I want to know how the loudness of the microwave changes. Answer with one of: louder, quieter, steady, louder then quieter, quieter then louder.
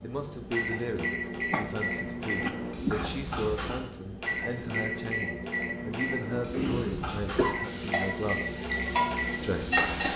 steady.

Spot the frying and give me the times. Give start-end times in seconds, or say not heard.
7.6-10.1.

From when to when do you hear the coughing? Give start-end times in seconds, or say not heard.
1.5-3.1, 6.5-7.6.